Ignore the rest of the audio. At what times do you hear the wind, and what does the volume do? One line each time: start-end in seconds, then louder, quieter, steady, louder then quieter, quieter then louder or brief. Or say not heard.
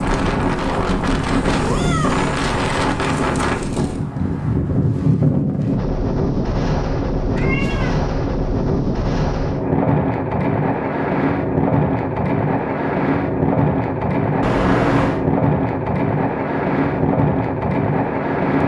0.0-18.6 steady.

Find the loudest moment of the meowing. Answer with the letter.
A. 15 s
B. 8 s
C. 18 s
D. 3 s
A.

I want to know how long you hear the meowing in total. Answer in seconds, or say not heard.
3 s.